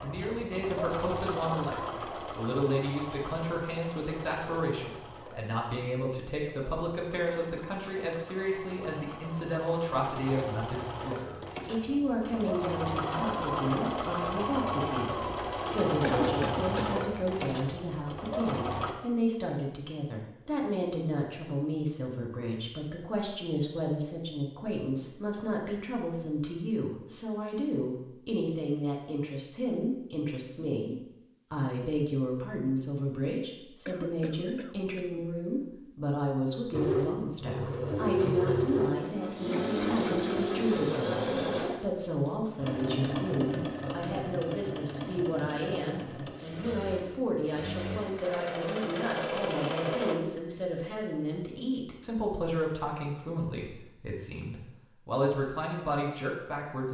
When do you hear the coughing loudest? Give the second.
16 s.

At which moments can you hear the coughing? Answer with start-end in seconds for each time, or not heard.
16.0-17.0, 33.9-35.2.